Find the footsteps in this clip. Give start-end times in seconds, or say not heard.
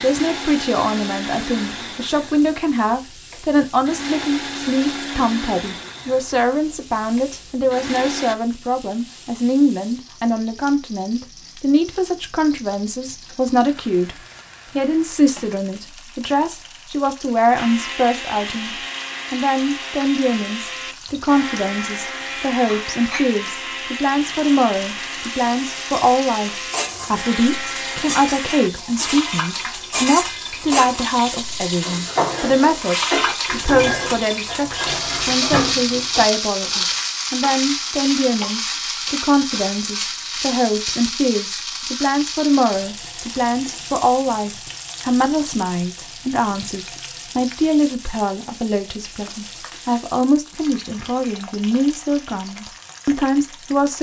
not heard.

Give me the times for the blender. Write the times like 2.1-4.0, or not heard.
0.0-8.3, 17.6-28.7.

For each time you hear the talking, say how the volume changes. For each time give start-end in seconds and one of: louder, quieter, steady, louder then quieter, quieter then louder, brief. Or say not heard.
0.0-53.9 steady.